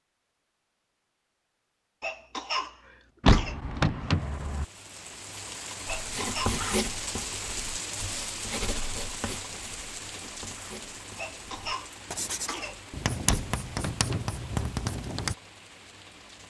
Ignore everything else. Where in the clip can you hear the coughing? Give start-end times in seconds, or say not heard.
2.0-3.5, 5.8-6.7, 11.2-13.1.